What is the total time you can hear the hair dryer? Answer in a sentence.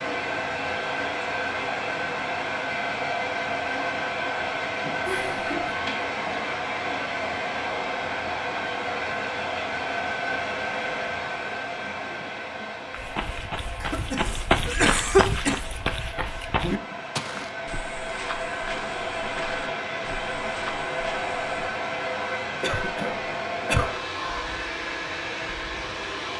The hair dryer can be heard for 26 seconds in total.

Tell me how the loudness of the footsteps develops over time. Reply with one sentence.
The loudness of the footsteps goes down.